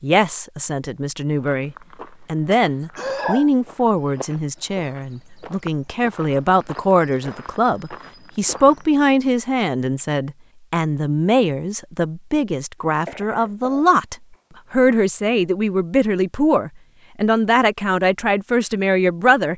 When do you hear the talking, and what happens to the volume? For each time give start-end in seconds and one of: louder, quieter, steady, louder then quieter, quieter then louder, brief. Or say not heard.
0.0-19.5 steady.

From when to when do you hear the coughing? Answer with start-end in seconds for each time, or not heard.
2.5-3.5, 13.1-13.8.